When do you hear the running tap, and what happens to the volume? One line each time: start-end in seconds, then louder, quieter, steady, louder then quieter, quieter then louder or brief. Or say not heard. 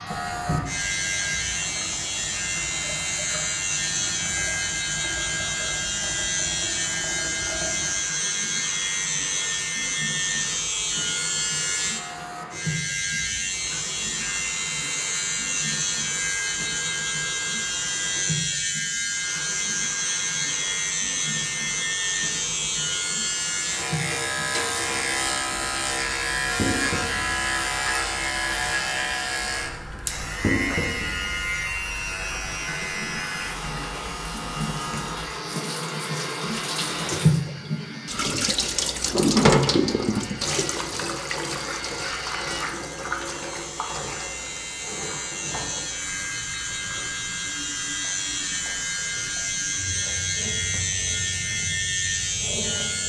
0.0-53.0 louder then quieter.